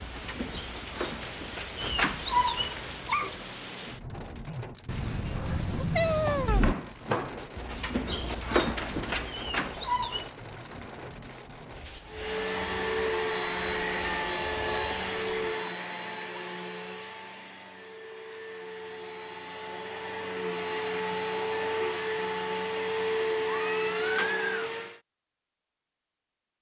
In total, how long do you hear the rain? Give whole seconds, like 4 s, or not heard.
16 s.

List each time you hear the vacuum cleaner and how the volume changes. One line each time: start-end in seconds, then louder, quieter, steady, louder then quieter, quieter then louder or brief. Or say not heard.
12.1-25.0 quieter then louder.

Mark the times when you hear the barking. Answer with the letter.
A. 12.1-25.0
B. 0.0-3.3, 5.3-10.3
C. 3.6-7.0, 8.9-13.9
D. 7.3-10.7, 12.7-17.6
B.